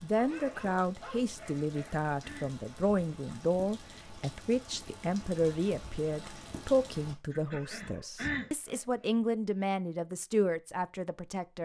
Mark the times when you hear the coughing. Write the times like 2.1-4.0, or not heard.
1.4-2.5, 7.3-8.5.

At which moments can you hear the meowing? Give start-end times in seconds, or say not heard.
not heard.